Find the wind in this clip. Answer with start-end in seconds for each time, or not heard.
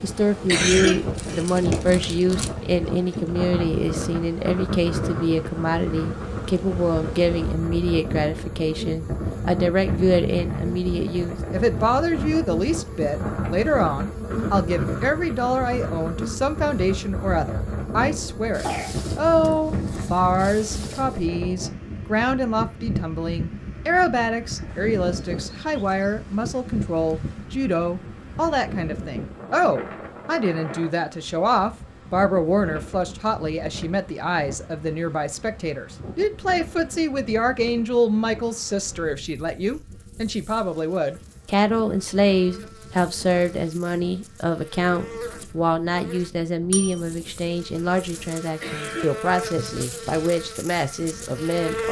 0.0-51.8.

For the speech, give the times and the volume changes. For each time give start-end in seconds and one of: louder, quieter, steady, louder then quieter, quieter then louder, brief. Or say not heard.
0.0-51.8 steady.